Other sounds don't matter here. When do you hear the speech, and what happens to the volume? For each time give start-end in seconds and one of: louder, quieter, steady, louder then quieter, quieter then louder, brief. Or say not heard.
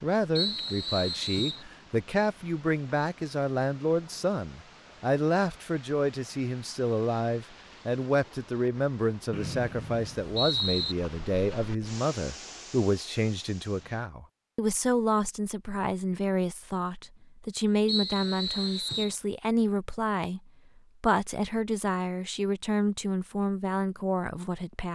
0.0-24.8 steady.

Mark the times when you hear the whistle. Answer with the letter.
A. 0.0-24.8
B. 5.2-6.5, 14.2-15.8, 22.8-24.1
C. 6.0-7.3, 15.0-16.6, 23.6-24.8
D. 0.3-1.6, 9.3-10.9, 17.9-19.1
D.